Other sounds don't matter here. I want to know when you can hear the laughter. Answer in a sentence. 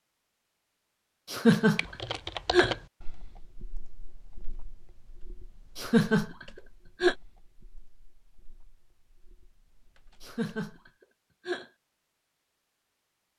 The laughter can be heard from 1.3 to 2.8 s, from 5.8 to 7.2 s and from 10.2 to 11.7 s.